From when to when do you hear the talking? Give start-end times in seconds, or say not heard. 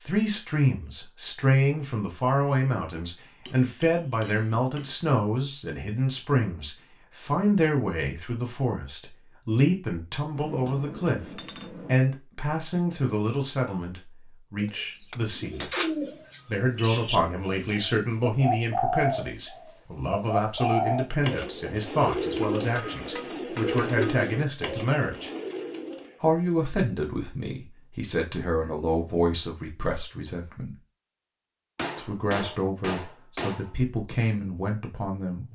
0.0-15.7, 16.4-25.3, 26.2-30.8, 31.9-35.5.